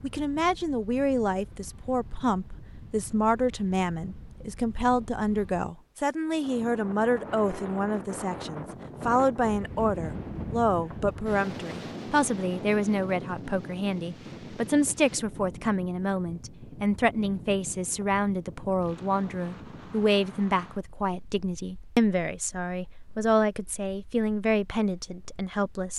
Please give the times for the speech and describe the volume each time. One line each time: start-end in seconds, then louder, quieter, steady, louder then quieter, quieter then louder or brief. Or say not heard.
0.0-25.9 steady.